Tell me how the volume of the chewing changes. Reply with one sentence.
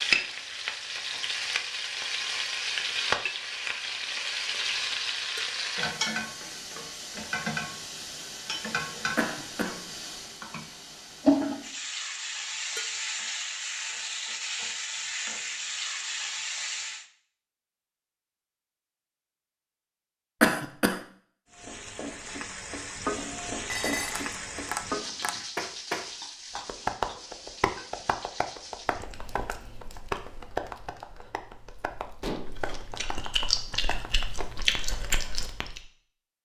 The volume of the chewing goes down, then up.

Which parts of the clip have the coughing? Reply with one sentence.
You can hear the coughing from 9.2 to 9.8 s and from 20.4 to 21.0 s.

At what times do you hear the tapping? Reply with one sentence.
The tapping can be heard from 24.2 to 35.7 s.